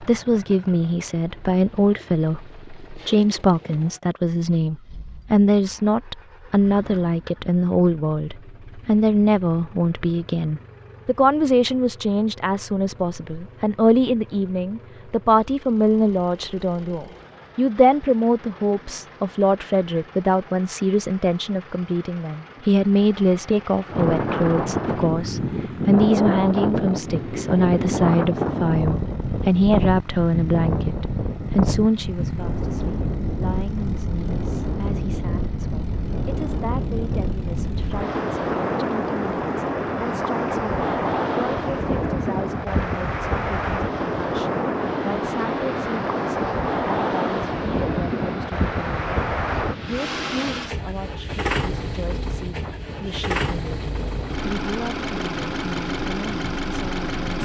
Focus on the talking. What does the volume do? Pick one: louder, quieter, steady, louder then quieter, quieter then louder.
quieter.